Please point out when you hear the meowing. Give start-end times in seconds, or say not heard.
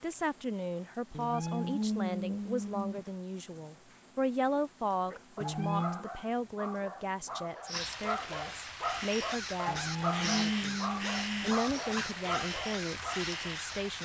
1.1-3.0, 5.4-6.0, 9.7-11.6.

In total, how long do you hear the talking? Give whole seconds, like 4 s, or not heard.
13 s.